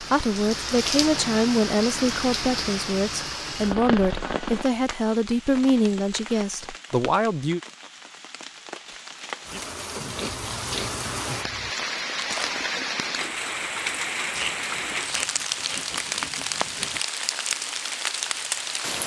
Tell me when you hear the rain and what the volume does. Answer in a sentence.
You can hear the rain from 0.0 to 19.0 s, getting quieter then louder.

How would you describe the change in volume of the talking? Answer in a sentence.
The volume of the talking stays about the same.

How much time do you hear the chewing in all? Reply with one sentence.
You can hear the chewing for 7 seconds altogether.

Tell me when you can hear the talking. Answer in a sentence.
The talking can be heard from 0.0 to 7.6 s.